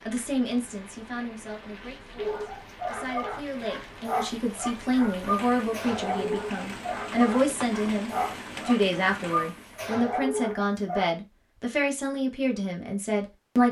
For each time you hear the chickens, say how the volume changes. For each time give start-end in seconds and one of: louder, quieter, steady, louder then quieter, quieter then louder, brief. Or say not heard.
not heard.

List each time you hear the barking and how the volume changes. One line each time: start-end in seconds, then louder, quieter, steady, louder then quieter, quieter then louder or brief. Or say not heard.
2.1-11.1 steady.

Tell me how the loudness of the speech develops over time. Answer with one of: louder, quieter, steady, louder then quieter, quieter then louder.
louder.